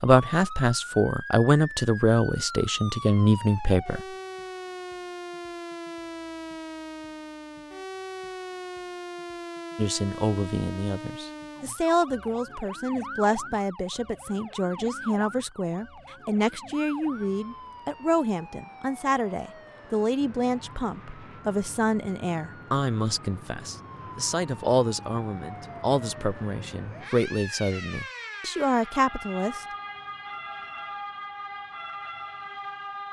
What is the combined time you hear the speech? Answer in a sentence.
The speech can be heard for 24 seconds in total.